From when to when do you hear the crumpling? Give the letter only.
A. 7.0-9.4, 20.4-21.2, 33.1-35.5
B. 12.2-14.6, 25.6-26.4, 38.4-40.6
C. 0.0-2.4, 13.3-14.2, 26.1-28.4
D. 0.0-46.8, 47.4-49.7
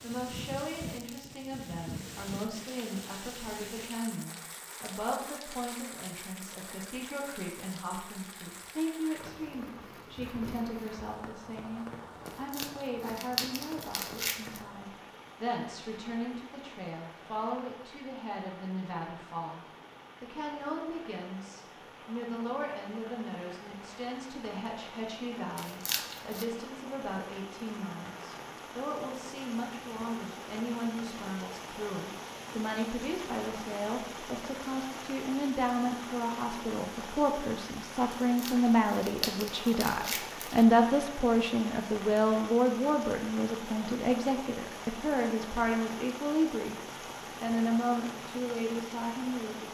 B.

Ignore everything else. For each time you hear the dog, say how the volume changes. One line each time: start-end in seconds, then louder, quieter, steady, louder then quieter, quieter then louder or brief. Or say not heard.
not heard.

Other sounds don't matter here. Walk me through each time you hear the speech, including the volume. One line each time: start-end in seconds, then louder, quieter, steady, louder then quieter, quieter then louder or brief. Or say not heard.
0.0-46.8 louder
47.4-49.7 brief.